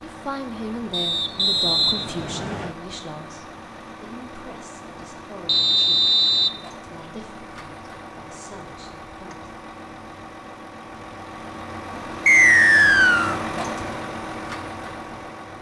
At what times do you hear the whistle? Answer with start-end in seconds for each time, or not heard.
0.9-2.8, 5.5-6.5, 12.2-13.3.